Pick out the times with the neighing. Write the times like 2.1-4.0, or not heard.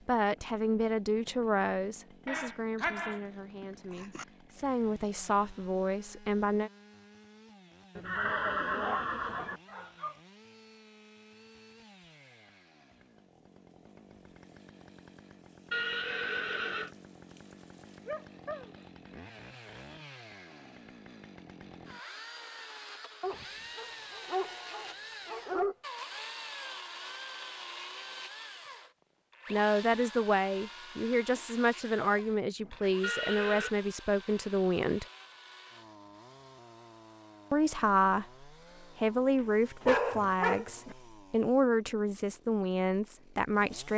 8.0-9.6, 15.7-16.9, 33.0-33.7.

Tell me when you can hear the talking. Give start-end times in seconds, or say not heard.
0.1-6.7, 29.5-35.0, 37.5-43.9.